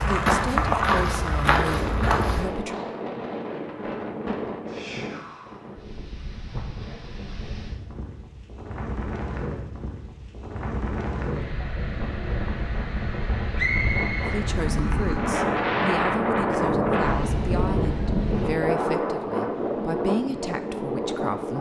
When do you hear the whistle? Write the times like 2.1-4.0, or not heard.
13.6-14.4.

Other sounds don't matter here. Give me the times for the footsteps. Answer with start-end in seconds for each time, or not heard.
0.0-2.5.